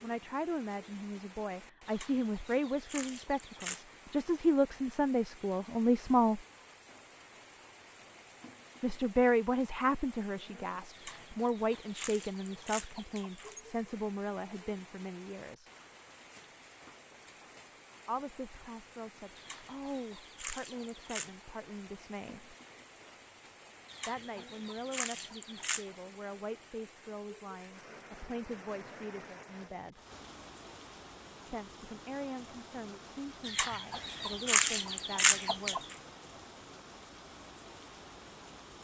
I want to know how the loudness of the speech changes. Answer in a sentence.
The loudness of the speech goes down.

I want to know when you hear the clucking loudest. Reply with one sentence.
The loudest moment of the clucking is at 35 seconds.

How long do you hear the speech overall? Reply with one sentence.
The speech can be heard for 28 seconds in total.